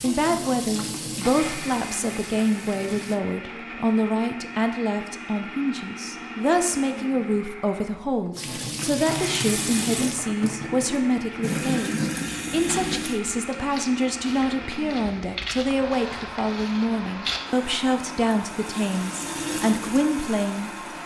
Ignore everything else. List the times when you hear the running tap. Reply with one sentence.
You can hear the running tap from 0.0 to 3.2 s, from 8.3 to 13.2 s and from 17.5 to 21.0 s.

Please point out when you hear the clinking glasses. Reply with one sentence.
The clinking glasses can't be heard in this clip.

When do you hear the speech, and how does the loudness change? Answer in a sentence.
The speech can be heard from 0.0 to 21.0 s, at a steady volume.